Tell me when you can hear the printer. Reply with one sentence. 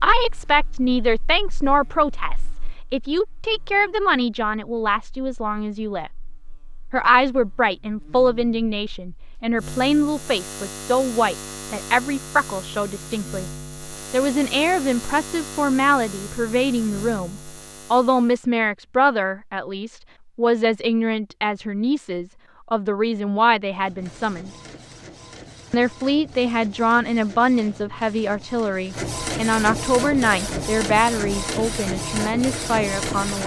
The printer can be heard from 23.7 to 33.4 s.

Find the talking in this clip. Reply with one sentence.
You can hear the talking from 0.0 to 6.1 s, from 6.9 to 13.4 s, from 14.1 to 24.5 s and from 25.7 to 33.4 s.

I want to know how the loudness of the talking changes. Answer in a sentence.
The loudness of the talking stays about the same.